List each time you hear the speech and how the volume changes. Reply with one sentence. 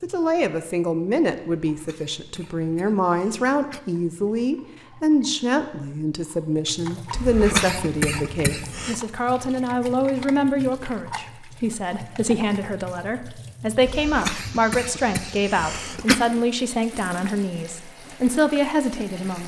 The speech can be heard from 0.0 to 19.4 s, at a steady volume.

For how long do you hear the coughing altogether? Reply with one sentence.
The coughing can be heard for 6 seconds in total.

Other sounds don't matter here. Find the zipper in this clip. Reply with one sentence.
The zipper can't be heard in this clip.